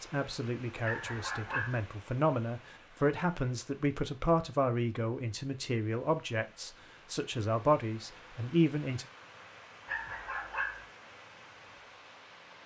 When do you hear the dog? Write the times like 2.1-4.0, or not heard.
0.8-1.8, 9.8-10.8.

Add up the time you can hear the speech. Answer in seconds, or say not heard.
9 s.